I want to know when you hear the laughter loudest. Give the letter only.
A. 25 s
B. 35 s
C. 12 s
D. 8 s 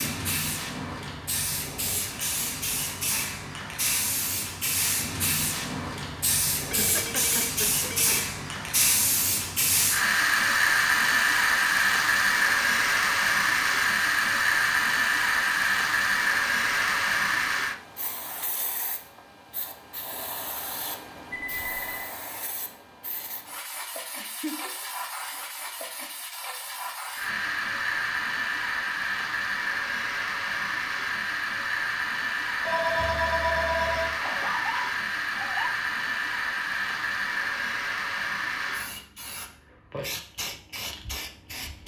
B.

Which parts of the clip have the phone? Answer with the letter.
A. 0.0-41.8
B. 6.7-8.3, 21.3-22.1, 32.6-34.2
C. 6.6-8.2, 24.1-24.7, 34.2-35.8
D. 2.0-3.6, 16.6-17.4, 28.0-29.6
B.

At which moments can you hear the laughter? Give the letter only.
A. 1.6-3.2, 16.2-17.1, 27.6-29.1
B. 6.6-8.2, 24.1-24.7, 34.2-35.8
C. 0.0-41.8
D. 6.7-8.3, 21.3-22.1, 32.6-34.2
B.